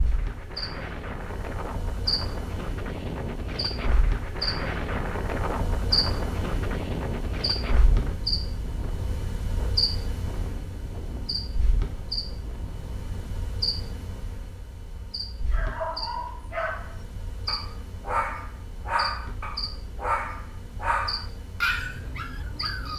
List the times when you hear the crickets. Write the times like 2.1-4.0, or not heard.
0.0-22.9.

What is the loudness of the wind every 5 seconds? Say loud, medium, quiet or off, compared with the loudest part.
loud, loud, medium, off, off.